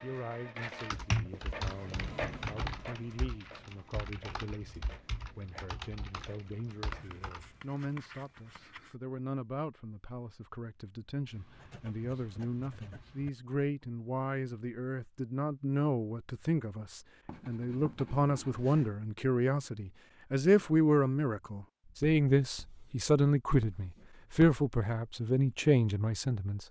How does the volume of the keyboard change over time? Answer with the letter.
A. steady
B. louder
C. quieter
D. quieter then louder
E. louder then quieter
C.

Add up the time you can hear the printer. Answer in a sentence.
You can hear the printer for 7 seconds altogether.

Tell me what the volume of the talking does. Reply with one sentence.
The volume of the talking goes up.